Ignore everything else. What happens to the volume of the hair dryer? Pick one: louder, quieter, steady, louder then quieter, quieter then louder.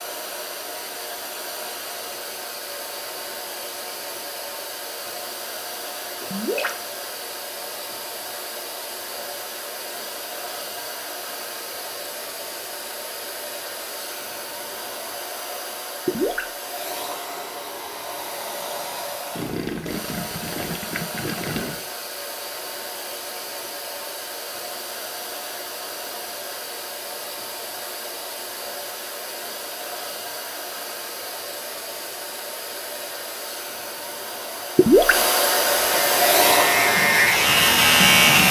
louder.